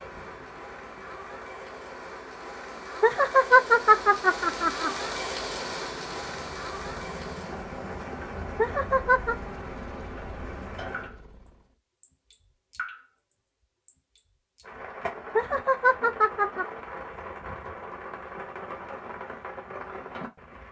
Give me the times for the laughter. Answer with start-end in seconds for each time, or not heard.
3.0-4.9, 8.6-9.3, 15.3-16.6.